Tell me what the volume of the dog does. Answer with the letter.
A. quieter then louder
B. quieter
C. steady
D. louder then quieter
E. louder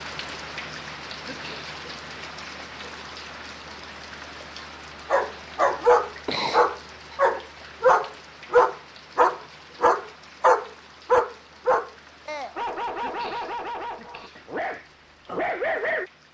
B.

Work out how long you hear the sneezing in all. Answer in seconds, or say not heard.
3 s.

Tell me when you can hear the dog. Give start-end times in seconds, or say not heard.
5.1-16.1.